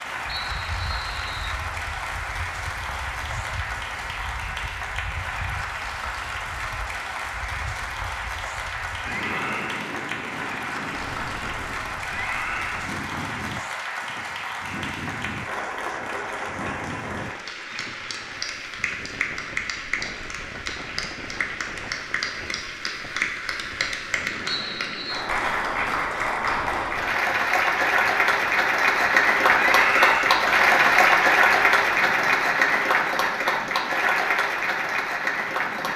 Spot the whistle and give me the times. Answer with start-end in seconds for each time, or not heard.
0.2-1.6, 24.4-25.2.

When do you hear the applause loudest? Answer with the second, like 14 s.
31 s.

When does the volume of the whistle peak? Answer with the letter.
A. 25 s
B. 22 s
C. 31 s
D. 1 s
A.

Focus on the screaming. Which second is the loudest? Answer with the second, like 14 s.
30 s.